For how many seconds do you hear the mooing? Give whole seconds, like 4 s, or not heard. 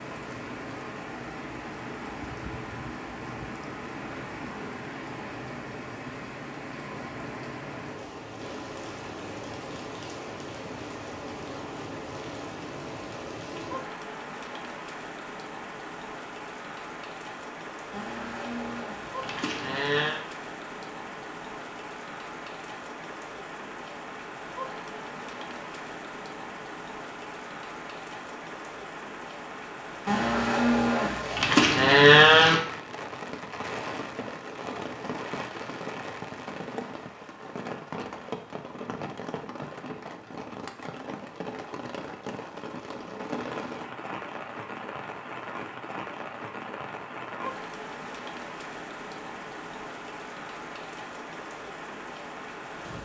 5 s.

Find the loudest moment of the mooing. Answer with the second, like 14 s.
32 s.